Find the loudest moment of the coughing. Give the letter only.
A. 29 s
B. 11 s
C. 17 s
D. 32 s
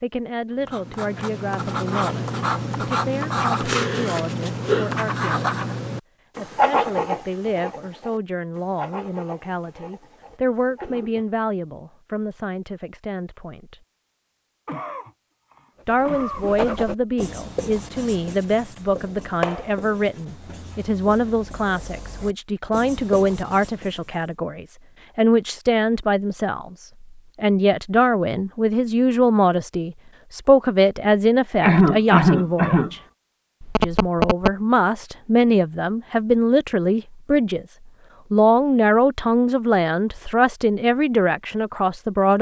D.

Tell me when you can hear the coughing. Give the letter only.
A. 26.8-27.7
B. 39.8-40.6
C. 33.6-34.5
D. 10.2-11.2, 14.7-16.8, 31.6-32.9
D.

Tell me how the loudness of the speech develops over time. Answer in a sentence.
The volume of the speech goes up.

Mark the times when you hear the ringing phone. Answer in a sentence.
You can hear the ringing phone from 33.6 to 34.5 s.